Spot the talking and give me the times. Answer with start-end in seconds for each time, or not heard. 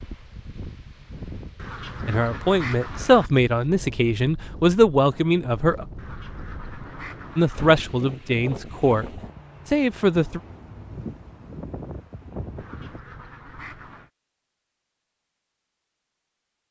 2.0-5.8, 7.3-10.4.